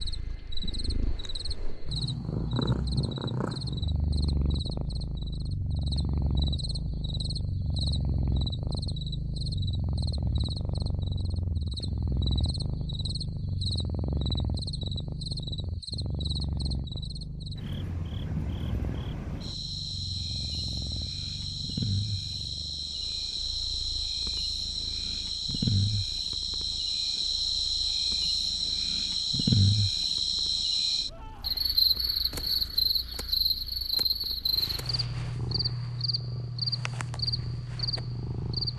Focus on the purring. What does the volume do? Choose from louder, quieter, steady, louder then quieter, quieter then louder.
quieter then louder.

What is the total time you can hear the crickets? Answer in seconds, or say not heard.
39 s.